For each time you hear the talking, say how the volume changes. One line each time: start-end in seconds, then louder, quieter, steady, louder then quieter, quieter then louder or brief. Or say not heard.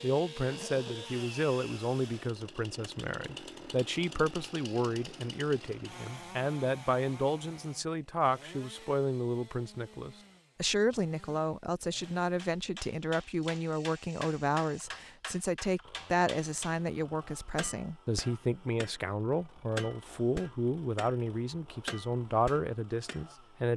0.0-23.7 steady.